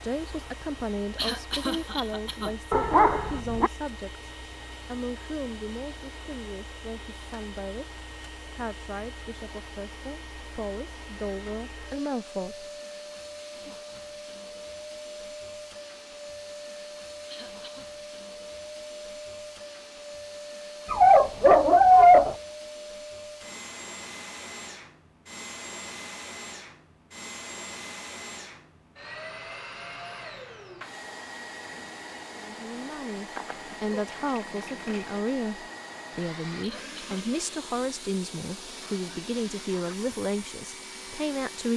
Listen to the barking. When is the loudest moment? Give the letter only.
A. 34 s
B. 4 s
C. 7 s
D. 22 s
D.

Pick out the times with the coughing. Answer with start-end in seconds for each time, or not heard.
1.1-2.5, 17.2-17.9, 36.6-37.2.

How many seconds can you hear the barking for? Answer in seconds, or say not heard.
4 s.